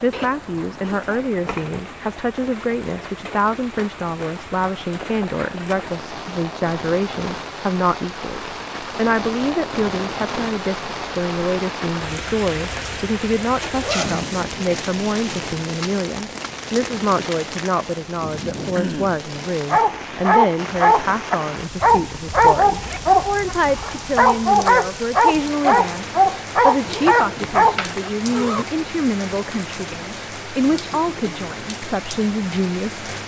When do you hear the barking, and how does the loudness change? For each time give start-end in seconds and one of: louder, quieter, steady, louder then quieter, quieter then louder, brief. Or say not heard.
19.6-28.1 steady.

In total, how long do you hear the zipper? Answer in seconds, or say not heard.
4 s.